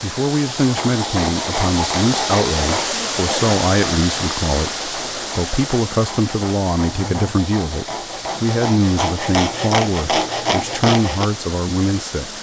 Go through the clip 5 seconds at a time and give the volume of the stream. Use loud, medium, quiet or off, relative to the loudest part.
loud, medium, medium.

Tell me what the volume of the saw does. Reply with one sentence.
The volume of the saw goes down, then up.